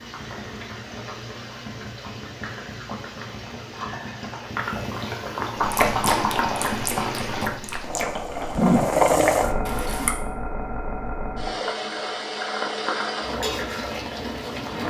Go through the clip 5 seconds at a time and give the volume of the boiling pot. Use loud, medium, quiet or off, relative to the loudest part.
medium, loud, medium.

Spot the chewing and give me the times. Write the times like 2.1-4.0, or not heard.
5.6-10.1.